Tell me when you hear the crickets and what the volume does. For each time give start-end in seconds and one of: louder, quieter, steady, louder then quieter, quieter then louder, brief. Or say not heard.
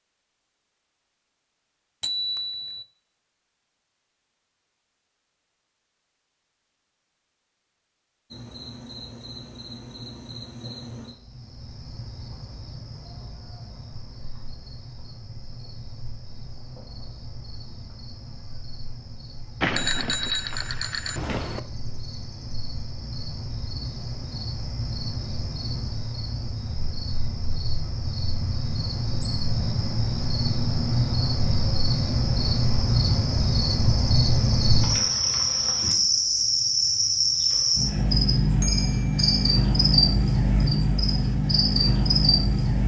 8.3-42.8 louder.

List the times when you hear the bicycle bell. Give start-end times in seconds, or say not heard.
2.0-2.9, 19.6-21.6, 38.6-39.5.